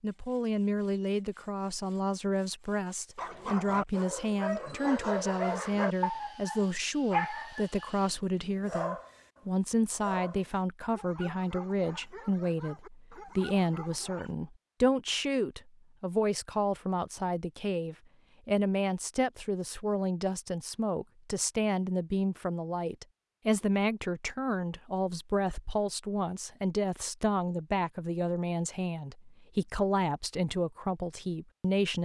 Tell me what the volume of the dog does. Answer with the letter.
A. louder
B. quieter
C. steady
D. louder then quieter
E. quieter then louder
B.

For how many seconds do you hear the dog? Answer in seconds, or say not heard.
11 s.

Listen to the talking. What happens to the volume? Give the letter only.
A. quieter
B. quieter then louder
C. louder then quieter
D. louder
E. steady
E.